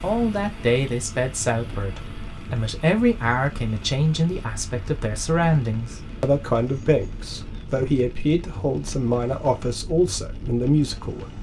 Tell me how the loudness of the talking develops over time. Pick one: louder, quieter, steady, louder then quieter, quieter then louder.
steady.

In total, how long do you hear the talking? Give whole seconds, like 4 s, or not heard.
11 s.